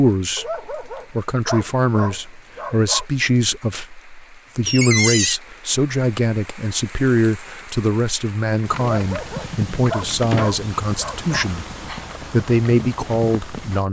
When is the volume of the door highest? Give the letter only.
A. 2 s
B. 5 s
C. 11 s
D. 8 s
B.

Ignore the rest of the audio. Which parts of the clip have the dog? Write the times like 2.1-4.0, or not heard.
0.3-3.0, 8.8-11.5.